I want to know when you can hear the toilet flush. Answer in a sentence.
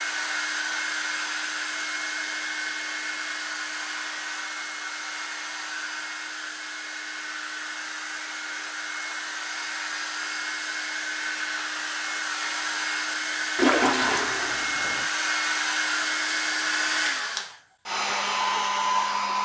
The toilet flush can be heard from 13.6 to 15.1 s.